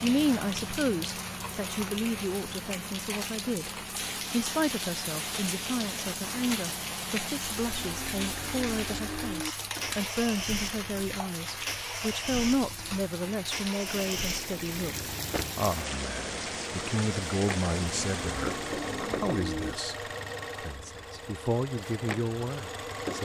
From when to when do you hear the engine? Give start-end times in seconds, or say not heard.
0.0-23.1.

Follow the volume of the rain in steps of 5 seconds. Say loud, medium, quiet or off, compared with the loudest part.
loud, loud, loud, loud, off.